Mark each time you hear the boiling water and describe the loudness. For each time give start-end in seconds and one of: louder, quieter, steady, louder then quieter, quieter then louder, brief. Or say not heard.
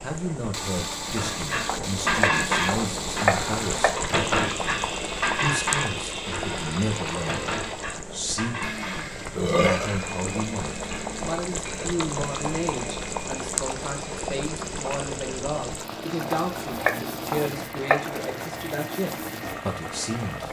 0.0-20.4 steady.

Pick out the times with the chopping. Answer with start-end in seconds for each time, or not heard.
1.6-4.0, 16.2-18.0.